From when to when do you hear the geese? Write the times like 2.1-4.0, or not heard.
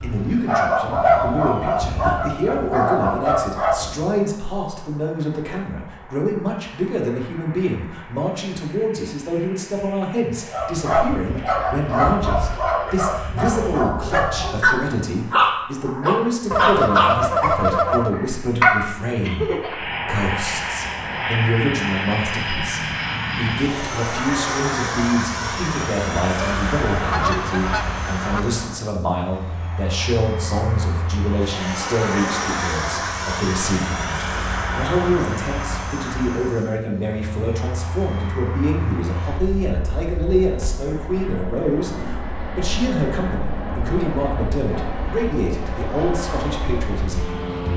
16.5-18.1, 26.4-28.4.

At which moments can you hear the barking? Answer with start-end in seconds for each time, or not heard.
0.0-4.0, 10.5-19.9.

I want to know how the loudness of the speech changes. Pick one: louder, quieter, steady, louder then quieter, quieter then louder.
steady.